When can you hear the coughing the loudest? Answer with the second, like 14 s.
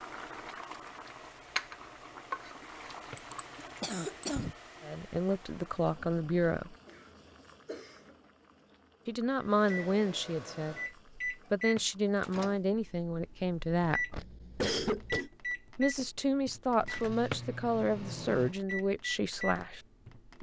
15 s.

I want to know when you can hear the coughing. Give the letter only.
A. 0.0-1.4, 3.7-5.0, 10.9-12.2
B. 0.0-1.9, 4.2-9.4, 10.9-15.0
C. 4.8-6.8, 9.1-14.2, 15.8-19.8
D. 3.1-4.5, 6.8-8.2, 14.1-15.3
D.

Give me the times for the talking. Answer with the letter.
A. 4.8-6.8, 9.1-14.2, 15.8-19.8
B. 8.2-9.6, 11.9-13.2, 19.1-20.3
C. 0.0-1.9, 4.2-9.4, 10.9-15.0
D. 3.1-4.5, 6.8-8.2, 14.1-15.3
A.